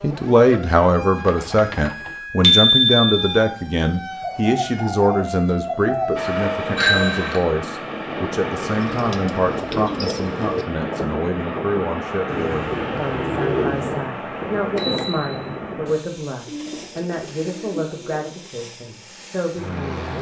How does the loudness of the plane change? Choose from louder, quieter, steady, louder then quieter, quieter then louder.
quieter.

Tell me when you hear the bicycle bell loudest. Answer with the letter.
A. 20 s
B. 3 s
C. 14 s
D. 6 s
B.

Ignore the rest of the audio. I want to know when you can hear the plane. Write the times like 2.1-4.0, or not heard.
6.2-20.1.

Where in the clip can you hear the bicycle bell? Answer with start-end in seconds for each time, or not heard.
2.4-3.2, 6.8-7.4, 14.6-15.6.